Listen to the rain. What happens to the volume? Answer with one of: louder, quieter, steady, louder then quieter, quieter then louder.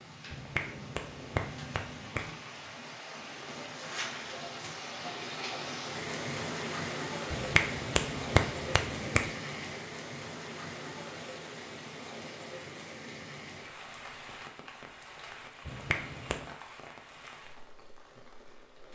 louder then quieter.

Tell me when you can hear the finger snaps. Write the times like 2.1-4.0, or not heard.
0.3-2.3, 7.3-9.3, 15.7-16.4.